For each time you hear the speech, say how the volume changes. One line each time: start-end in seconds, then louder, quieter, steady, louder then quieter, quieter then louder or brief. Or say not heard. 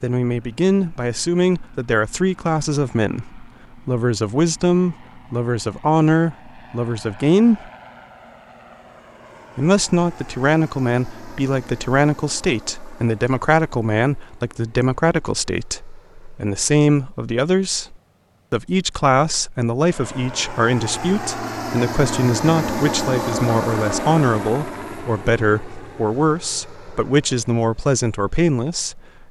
0.0-7.7 steady
9.6-29.2 steady.